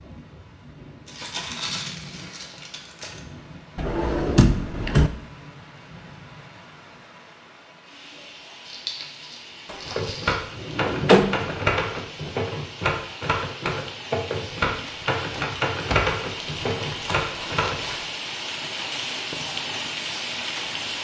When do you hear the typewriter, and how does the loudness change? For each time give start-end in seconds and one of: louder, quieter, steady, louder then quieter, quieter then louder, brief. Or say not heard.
9.8-17.8 steady.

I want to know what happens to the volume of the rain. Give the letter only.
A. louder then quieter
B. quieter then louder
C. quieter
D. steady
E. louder
E.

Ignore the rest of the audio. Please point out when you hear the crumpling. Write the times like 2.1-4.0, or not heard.
1.1-3.2, 8.7-10.3, 16.9-18.0.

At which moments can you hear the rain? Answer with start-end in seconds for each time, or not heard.
0.0-20.9.